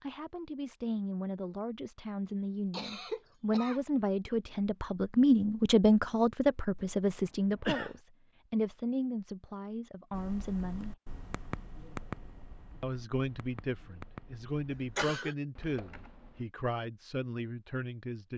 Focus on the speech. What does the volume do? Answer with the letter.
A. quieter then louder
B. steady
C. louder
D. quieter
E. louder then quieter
E.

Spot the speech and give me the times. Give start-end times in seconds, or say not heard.
0.0-10.9, 12.8-18.3.